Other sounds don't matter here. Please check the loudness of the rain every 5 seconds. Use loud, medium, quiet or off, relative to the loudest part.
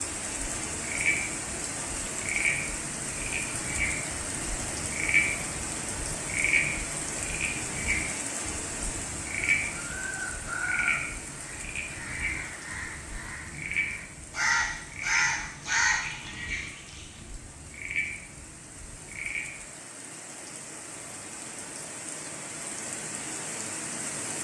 loud, loud, medium, quiet, loud.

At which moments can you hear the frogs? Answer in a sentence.
The frogs can be heard from 0.2 to 19.6 s.